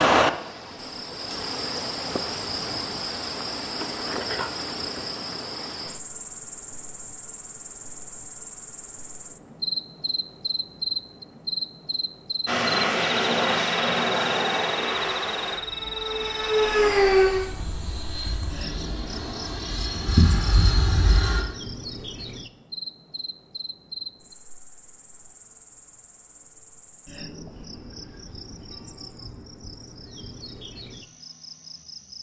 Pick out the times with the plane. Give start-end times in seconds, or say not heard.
12.4-21.4.